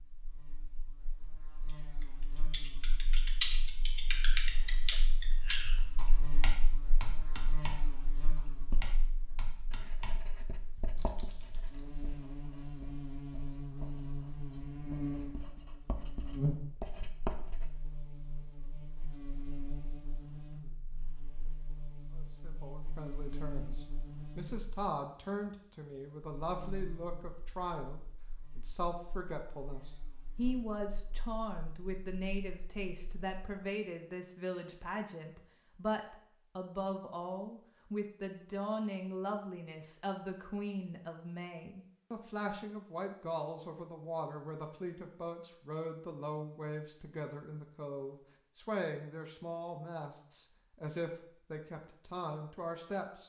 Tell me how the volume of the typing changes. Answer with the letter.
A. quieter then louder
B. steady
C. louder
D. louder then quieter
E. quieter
E.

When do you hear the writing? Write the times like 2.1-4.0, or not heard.
8.7-17.8.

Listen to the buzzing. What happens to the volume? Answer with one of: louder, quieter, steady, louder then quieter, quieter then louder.
louder then quieter.